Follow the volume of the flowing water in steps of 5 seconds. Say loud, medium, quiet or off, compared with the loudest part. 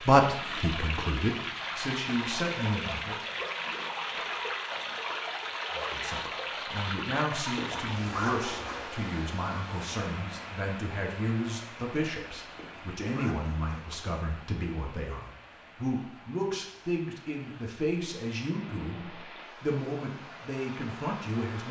loud, loud, medium, quiet, medium.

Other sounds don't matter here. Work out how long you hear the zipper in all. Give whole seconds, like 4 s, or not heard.
3 s.